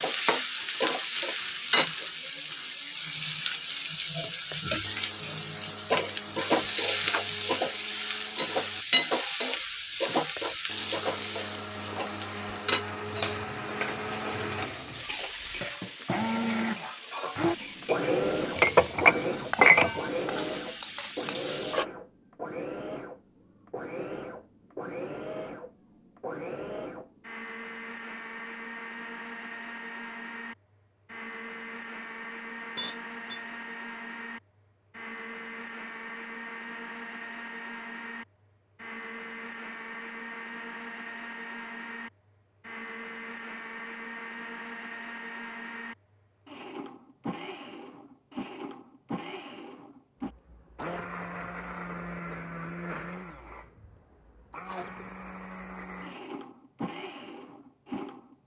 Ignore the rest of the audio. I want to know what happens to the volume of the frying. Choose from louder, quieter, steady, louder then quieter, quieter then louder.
quieter.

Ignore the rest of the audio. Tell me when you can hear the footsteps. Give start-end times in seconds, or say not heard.
not heard.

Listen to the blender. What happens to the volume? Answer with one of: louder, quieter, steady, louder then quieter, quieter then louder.
louder then quieter.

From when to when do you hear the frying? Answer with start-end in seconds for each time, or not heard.
0.0-21.9.